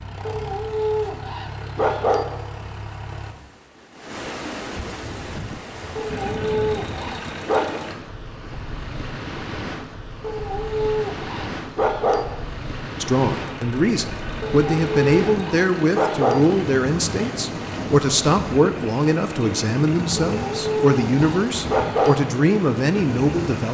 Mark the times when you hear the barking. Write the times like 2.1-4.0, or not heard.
0.2-2.2, 6.0-7.8, 10.2-12.2, 14.4-16.4, 20.2-22.1.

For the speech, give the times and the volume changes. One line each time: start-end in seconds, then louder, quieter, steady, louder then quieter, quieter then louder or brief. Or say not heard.
13.0-23.6 steady.